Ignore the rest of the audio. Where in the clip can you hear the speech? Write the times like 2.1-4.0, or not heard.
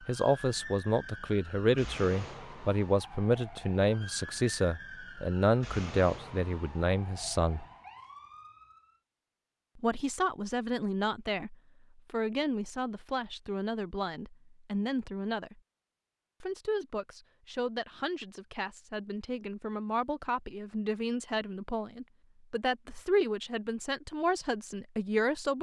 0.0-7.7, 9.8-15.6, 16.4-25.5.